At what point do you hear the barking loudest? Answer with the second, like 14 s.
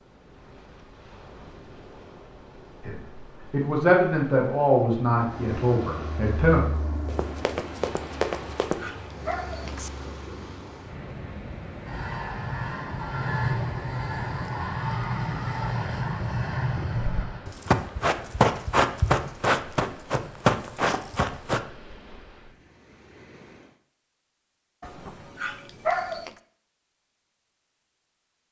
26 s.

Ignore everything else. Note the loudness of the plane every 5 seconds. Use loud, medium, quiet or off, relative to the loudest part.
off, medium, loud, loud, off, off.